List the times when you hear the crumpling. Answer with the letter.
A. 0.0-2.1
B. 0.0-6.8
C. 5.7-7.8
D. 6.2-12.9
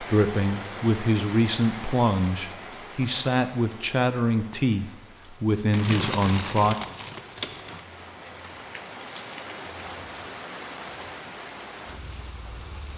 C.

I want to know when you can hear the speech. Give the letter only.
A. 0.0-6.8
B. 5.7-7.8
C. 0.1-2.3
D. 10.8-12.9
A.